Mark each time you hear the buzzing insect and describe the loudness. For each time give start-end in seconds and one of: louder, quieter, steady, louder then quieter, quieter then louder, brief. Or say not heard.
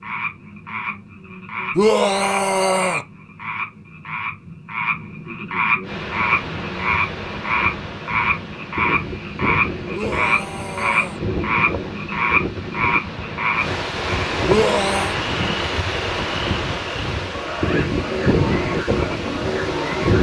not heard.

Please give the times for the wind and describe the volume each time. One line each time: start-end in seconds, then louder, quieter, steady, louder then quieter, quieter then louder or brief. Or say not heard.
5.8-20.1 louder.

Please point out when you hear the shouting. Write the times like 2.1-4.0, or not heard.
1.8-3.0, 9.9-11.2, 14.4-15.2.